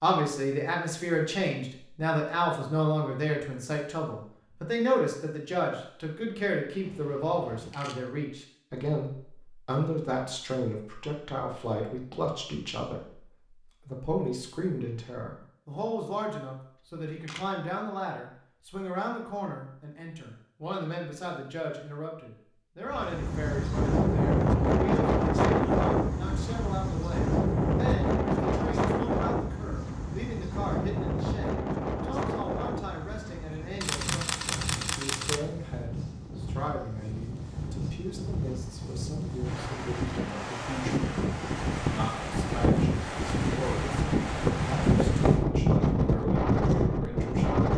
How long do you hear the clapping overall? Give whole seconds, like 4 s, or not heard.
not heard.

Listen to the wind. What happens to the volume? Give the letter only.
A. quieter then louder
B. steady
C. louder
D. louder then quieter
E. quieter
A.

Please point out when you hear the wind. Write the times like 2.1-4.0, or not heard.
22.9-47.7.